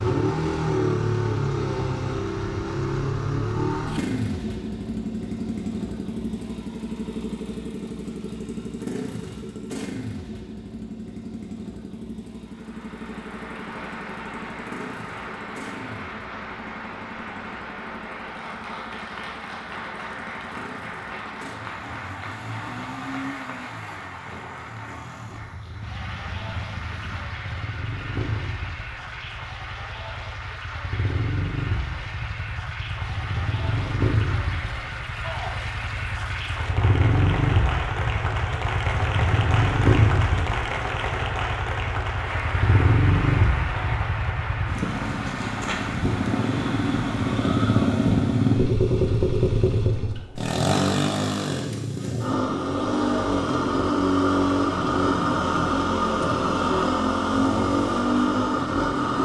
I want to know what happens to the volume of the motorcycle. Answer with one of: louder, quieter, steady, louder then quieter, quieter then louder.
quieter then louder.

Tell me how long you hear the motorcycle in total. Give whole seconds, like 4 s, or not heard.
59 s.